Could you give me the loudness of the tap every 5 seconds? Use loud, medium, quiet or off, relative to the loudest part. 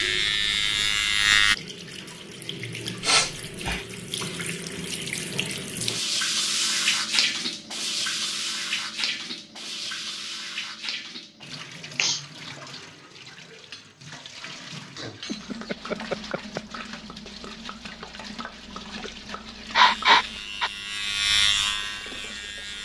medium, loud, medium, medium, quiet.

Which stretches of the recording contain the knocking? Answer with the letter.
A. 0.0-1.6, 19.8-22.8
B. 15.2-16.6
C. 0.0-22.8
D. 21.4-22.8
B.